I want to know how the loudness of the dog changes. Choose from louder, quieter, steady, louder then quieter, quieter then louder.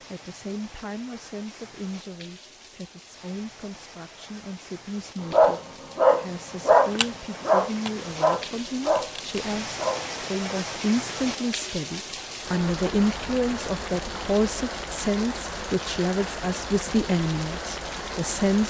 quieter.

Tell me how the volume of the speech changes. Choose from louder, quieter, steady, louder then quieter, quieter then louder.
louder.